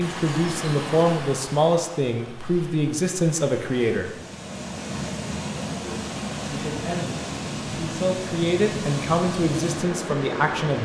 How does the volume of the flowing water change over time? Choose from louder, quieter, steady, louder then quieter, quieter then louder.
quieter then louder.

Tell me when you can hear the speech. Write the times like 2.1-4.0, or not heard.
0.0-4.1, 5.7-10.7.